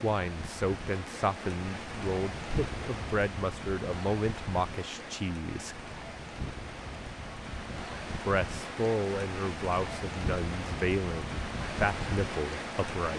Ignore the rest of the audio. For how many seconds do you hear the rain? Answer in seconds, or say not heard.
13 s.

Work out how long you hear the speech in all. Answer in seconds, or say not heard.
11 s.